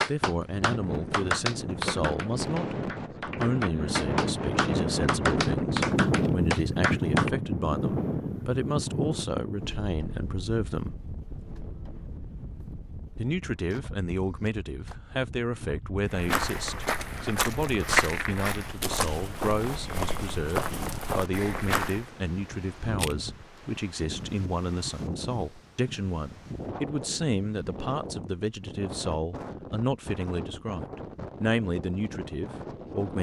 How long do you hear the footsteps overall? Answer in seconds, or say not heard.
6 s.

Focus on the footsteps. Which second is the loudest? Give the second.
18 s.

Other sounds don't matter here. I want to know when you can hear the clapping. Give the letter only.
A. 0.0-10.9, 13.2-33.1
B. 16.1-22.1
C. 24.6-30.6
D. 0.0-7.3
D.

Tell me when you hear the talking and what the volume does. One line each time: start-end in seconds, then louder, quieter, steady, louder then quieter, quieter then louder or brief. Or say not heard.
0.0-10.9 steady
13.2-33.1 steady.